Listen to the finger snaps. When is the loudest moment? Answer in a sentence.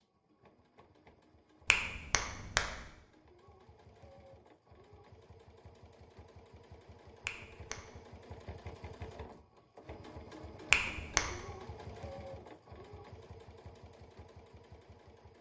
The volume of the finger snaps peaks at 11 seconds.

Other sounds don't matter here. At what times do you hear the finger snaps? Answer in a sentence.
You can hear the finger snaps from 1.6 to 2.9 s, from 7.2 to 7.9 s and from 10.7 to 11.4 s.